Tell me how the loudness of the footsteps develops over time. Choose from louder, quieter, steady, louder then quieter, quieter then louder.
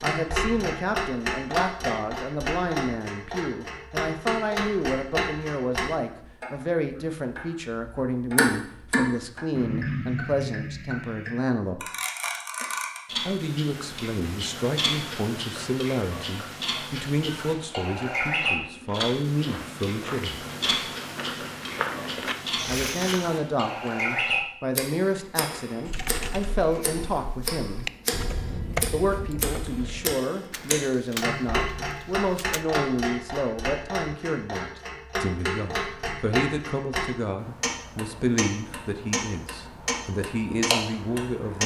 louder.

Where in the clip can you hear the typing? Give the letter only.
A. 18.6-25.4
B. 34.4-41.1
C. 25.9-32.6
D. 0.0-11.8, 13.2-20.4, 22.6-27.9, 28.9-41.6
C.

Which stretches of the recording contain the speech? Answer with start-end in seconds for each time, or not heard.
0.0-11.8, 13.2-20.4, 22.6-27.9, 28.9-41.6.